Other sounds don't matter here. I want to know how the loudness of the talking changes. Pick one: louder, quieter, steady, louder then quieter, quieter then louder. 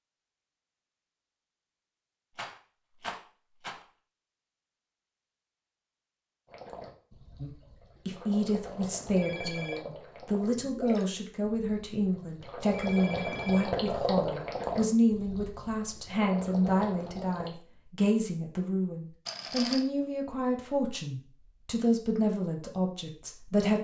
steady.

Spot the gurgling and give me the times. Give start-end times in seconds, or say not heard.
6.5-17.6.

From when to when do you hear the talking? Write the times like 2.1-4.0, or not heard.
7.4-23.7.